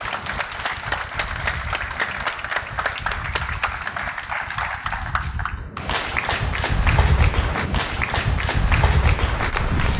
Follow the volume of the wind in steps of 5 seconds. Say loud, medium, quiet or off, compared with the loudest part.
quiet, loud.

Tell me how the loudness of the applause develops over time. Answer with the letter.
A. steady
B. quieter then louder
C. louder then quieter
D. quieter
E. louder
A.